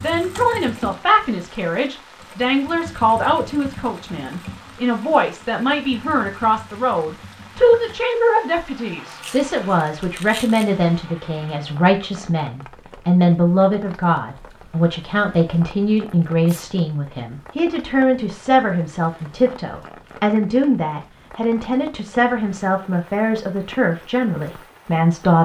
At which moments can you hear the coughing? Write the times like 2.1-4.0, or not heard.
not heard.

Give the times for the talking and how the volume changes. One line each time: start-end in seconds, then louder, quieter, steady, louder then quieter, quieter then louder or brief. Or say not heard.
0.0-25.4 steady.